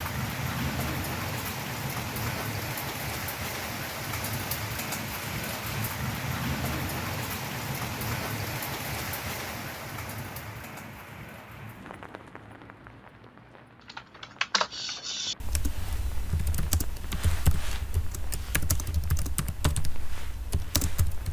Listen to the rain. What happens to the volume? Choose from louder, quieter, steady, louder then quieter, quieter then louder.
quieter.